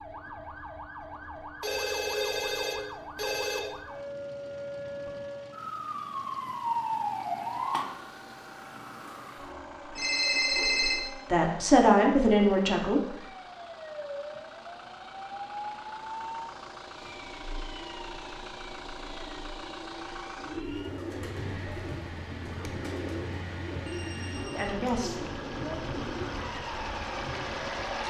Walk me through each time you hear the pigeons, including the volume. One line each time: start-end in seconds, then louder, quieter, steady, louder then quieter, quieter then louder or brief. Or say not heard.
20.4-27.9 steady.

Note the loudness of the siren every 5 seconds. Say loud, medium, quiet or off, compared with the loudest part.
medium, loud, medium, medium, medium, medium.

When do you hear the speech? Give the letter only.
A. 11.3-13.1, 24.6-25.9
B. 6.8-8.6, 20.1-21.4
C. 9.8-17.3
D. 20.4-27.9
A.